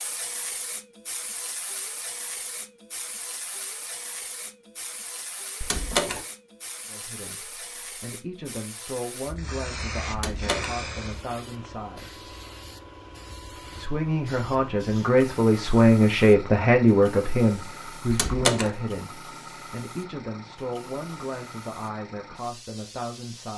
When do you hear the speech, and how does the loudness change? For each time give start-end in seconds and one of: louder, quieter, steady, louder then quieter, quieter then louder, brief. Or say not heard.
6.9-12.2 louder
13.7-23.5 quieter.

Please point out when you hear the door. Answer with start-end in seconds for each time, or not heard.
5.6-6.2, 10.1-10.8, 18.1-18.8.